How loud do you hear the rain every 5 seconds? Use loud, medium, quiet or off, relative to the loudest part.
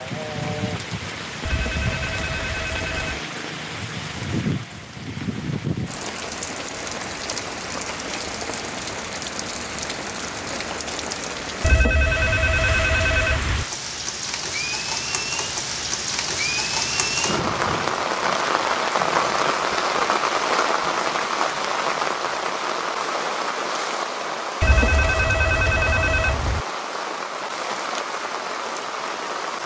medium, medium, medium, loud, loud, medium.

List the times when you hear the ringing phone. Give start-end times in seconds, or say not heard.
1.4-3.2, 11.6-13.7, 24.6-26.6.